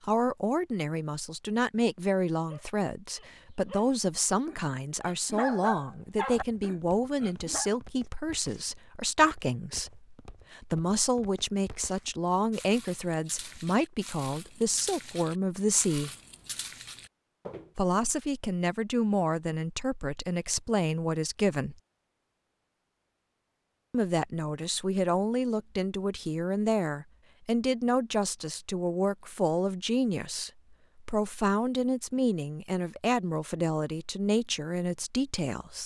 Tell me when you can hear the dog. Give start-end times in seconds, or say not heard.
2.4-7.7.